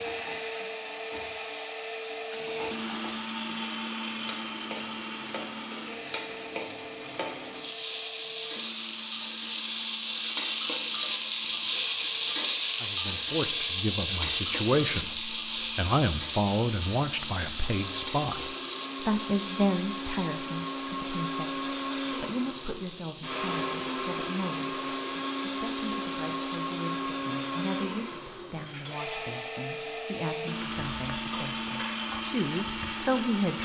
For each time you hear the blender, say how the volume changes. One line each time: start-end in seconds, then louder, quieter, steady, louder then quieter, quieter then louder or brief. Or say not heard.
0.0-33.5 quieter then louder.